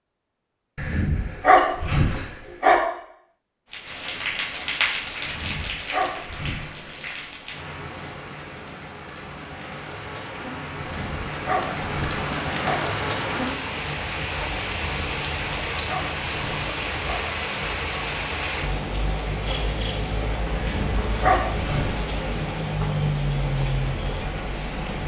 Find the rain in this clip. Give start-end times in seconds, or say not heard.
3.7-25.0.